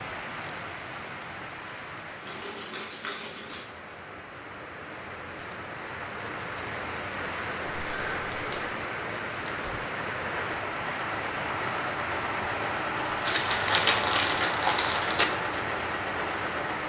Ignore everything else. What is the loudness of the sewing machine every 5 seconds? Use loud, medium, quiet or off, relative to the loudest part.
off, off, loud, loud.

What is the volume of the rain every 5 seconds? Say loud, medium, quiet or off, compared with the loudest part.
medium, loud, loud, loud.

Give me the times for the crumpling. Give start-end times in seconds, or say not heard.
2.2-3.6, 7.8-8.8, 13.2-15.2.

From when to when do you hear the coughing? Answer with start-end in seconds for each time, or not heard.
not heard.